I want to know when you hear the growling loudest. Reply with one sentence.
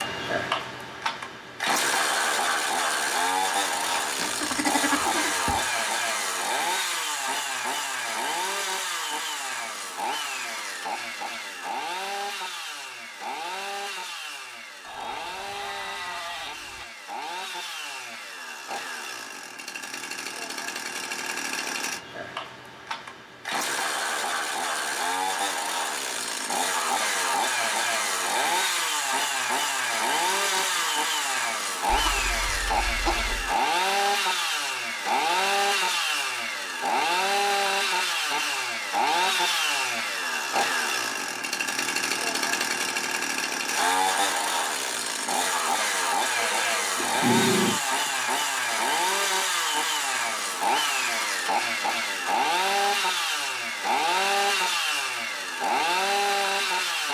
The loudest moment of the growling is at 47 seconds.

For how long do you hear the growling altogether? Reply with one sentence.
You can hear the growling for 2 seconds altogether.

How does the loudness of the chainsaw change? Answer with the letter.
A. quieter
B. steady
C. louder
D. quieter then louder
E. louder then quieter
D.